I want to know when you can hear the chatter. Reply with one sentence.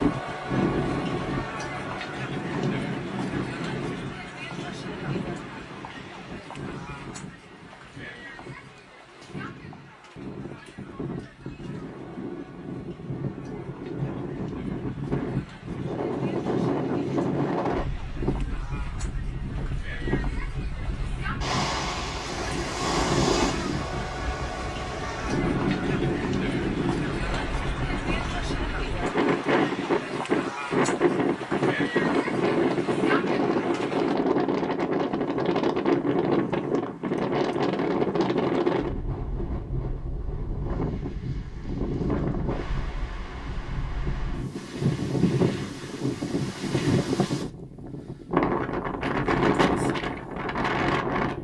The chatter can be heard from 0.0 to 34.1 s.